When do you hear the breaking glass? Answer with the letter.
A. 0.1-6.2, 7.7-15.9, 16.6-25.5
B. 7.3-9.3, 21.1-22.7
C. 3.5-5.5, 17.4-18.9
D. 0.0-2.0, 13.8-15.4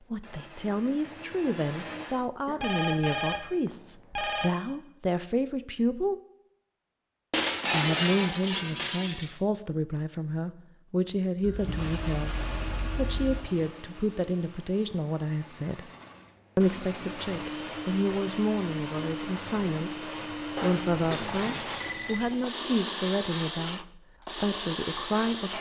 B.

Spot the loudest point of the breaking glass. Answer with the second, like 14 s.
8 s.